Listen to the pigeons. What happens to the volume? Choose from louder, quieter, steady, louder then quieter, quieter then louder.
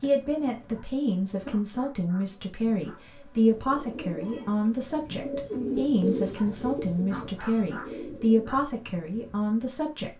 louder then quieter.